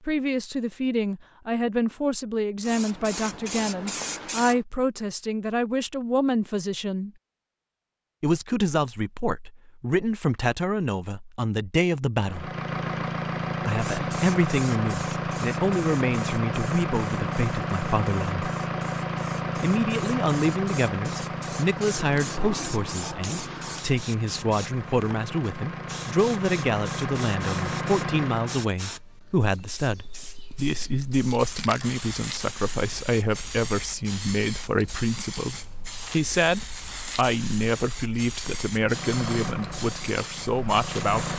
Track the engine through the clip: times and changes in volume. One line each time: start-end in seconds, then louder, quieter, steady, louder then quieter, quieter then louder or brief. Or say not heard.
12.2-28.8 quieter then louder
38.8-41.3 brief.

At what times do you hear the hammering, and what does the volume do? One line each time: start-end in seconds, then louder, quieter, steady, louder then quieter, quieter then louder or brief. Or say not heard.
not heard.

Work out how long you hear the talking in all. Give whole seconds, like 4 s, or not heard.
38 s.